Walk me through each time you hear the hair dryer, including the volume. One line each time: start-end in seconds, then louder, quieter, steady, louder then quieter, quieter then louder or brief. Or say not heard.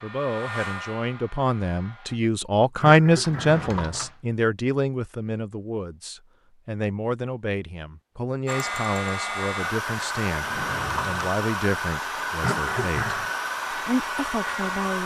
0.0-2.2 brief
8.4-15.0 steady.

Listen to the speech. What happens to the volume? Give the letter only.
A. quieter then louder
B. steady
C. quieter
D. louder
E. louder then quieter
C.